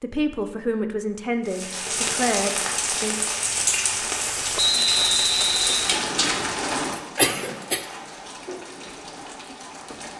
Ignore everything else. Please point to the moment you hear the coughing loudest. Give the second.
7 s.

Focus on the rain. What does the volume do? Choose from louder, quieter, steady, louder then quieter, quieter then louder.
quieter.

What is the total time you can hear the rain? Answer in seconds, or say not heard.
9 s.